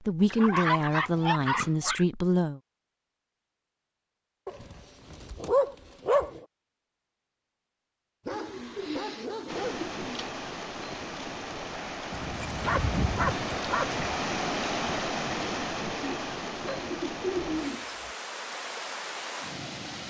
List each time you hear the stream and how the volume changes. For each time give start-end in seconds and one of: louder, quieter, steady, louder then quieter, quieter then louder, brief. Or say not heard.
9.4-20.0 louder then quieter.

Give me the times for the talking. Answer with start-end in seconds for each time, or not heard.
0.1-2.6.